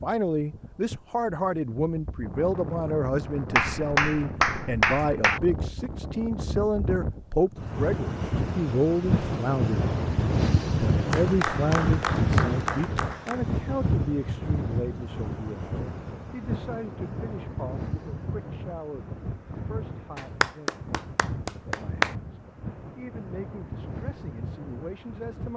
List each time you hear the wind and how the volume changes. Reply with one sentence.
You can hear the wind from 0.0 to 25.5 s, getting louder then quieter.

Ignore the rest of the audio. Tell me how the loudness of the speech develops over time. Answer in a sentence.
The volume of the speech goes down.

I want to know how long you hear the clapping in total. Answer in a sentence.
The clapping can be heard for 6 seconds in total.